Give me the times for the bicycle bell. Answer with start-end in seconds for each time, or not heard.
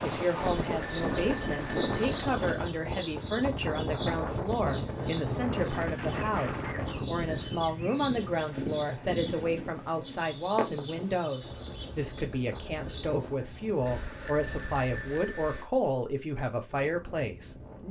0.4-2.0, 13.8-15.7.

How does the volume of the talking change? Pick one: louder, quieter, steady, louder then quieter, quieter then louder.
steady.